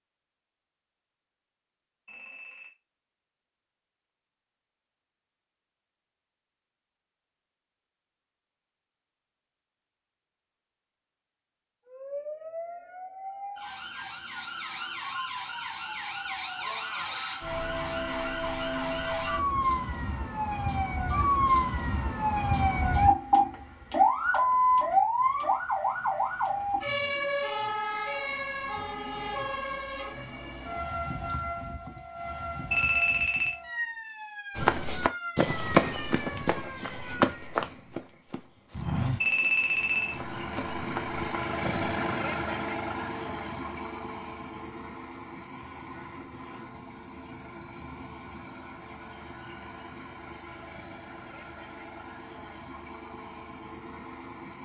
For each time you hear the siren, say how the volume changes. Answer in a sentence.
The siren can be heard from 11.8 to 37.5 s, getting louder then quieter.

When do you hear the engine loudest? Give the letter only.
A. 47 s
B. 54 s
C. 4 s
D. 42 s
D.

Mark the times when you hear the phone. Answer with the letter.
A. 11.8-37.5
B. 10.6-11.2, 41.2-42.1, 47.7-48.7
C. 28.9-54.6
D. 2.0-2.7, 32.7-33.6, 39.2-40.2
D.